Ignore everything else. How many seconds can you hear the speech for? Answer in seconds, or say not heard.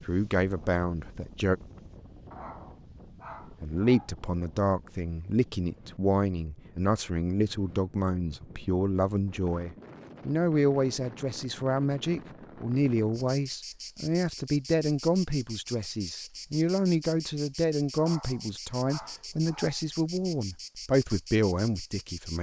20 s.